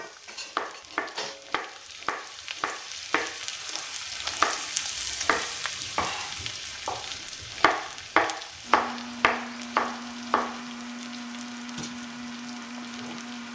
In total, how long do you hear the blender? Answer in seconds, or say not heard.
5 s.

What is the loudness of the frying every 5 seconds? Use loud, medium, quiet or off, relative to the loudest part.
loud, loud, medium.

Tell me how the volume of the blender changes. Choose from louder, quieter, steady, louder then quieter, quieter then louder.
steady.